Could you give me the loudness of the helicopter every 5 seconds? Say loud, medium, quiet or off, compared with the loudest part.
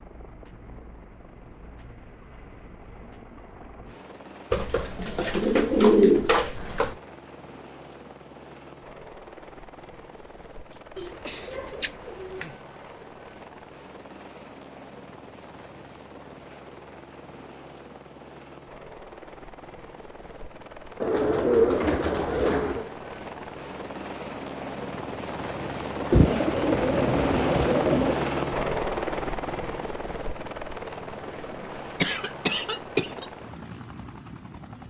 quiet, quiet, quiet, quiet, medium, loud, medium.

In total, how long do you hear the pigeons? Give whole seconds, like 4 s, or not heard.
8 s.